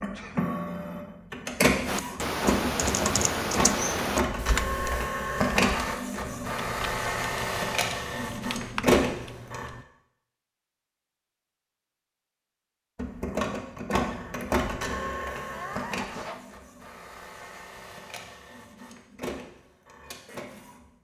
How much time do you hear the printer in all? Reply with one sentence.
The printer can be heard for 18 seconds in total.